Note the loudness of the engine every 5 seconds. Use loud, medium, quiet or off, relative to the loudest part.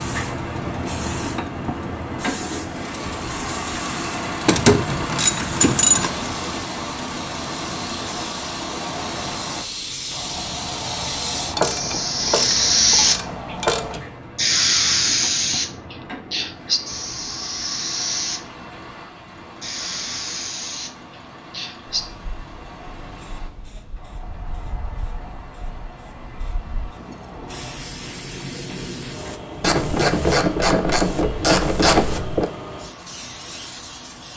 loud, loud, medium, medium, quiet, quiet, quiet.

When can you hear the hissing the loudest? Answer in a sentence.
The loudest moment of the hissing is at 13 seconds.